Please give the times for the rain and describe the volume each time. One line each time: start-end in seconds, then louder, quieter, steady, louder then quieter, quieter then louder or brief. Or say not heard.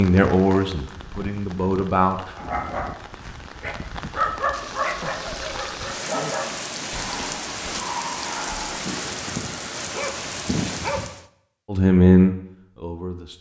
0.0-11.2 louder.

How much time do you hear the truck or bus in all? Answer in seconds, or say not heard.
not heard.